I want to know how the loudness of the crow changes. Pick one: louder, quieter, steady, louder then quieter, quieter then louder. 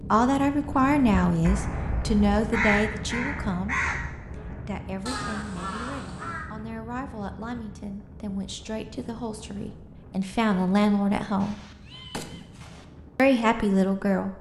louder then quieter.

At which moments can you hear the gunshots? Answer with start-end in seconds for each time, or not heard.
11.4-12.8.